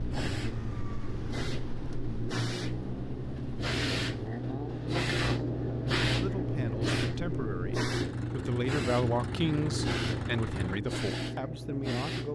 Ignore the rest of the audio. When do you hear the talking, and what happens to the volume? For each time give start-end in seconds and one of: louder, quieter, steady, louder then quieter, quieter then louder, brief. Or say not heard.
6.2-12.3 louder then quieter.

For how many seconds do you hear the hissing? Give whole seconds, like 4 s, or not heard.
12 s.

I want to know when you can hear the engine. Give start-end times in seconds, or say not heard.
0.0-10.8.